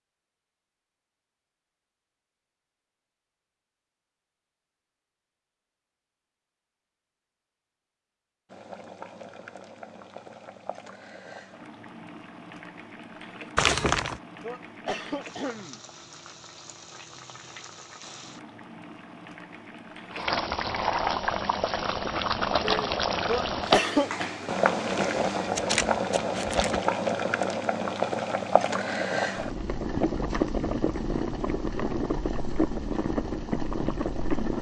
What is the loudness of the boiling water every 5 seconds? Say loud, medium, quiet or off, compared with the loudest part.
off, quiet, quiet, quiet, loud, loud, loud.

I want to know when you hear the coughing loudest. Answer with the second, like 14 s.
24 s.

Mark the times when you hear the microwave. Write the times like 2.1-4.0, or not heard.
not heard.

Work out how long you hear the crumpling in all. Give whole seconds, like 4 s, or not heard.
3 s.